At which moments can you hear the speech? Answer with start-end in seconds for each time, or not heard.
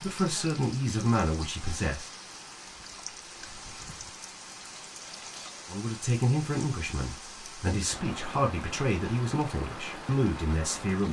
0.0-2.1, 5.7-11.0.